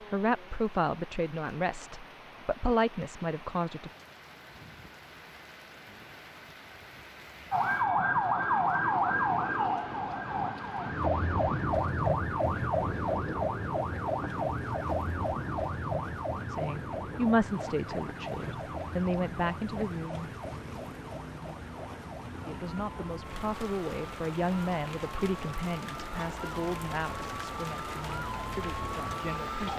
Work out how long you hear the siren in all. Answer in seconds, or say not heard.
22 s.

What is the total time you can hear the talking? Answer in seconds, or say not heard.
15 s.